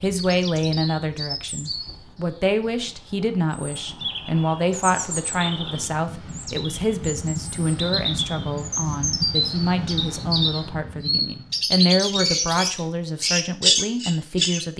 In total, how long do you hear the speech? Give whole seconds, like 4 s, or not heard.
15 s.